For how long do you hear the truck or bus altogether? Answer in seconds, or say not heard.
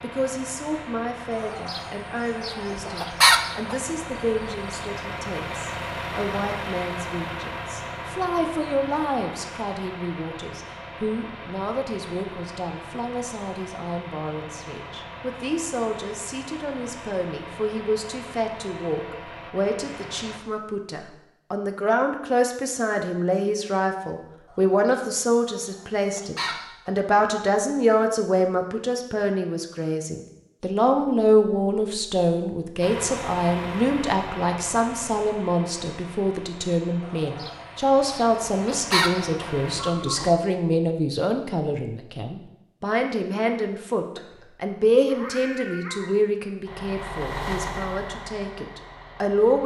31 s.